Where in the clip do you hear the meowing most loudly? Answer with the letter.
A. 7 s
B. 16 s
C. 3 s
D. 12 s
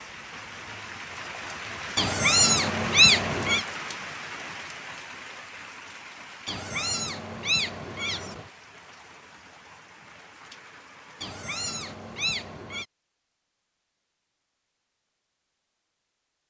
C.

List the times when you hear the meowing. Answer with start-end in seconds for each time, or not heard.
1.9-3.6, 6.5-8.5, 11.2-12.8.